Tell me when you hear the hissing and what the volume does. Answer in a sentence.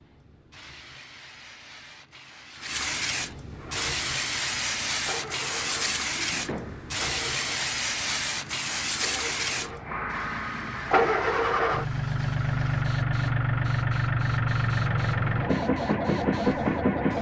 The hissing can be heard from 0.0 to 17.1 s, getting louder then quieter.